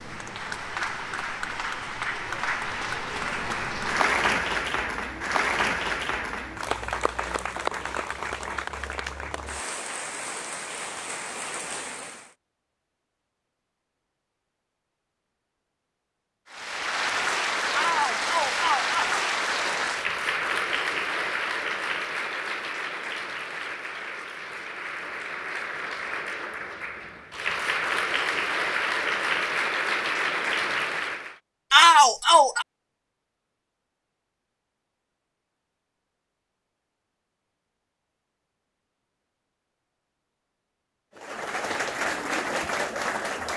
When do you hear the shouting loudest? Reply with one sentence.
The loudest moment of the shouting is at 32 seconds.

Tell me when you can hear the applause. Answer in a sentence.
The applause can be heard from 0.0 to 12.3 s, from 16.5 to 31.4 s and from 41.1 to 43.5 s.